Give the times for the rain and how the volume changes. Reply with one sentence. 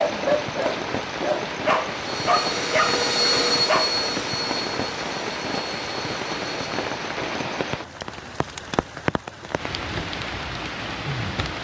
You can hear the rain from 0.0 to 11.6 s, at a steady volume.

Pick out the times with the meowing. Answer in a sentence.
The meowing can't be heard in this clip.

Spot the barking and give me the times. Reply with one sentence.
You can hear the barking from 0.0 to 4.0 s.